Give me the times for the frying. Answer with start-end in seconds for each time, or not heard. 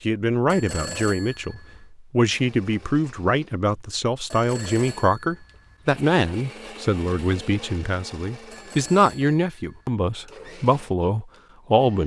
not heard.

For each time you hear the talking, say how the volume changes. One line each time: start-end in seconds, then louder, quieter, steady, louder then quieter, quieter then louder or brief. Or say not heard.
0.0-12.0 steady.